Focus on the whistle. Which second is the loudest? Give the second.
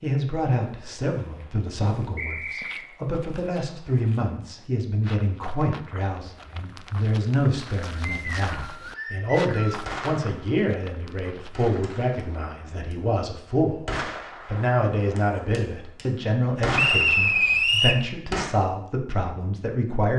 17 s.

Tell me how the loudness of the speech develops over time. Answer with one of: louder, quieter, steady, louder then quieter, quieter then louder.
steady.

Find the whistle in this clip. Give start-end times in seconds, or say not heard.
2.1-2.9, 8.1-9.8, 16.8-18.1.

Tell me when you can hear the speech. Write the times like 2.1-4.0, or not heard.
0.0-20.1.